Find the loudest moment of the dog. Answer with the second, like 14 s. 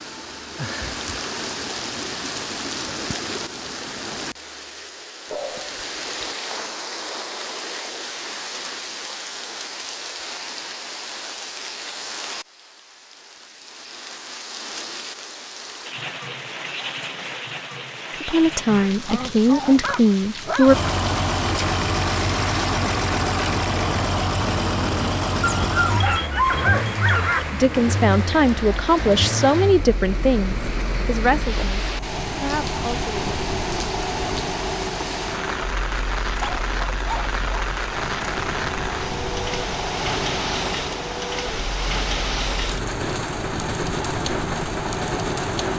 27 s.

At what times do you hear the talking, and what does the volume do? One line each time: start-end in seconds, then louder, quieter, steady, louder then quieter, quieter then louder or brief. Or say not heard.
18.2-20.8 brief
27.5-33.3 quieter.